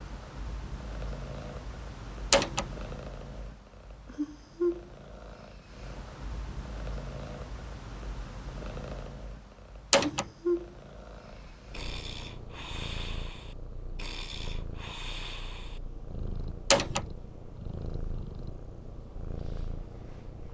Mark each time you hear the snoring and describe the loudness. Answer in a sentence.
You can hear the snoring from 11.2 to 18.7 s, at a steady volume.